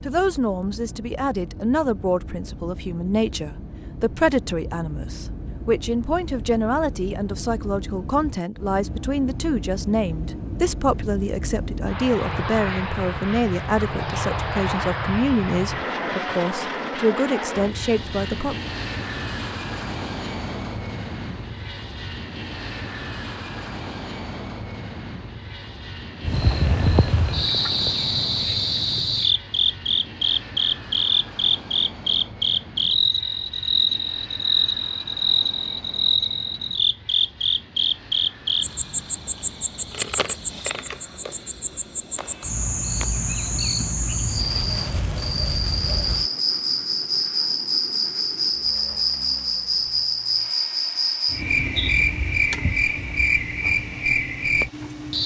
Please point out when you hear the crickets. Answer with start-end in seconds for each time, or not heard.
26.2-55.2.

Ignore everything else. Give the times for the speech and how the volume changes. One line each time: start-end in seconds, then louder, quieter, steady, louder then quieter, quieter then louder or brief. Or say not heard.
0.0-18.6 steady.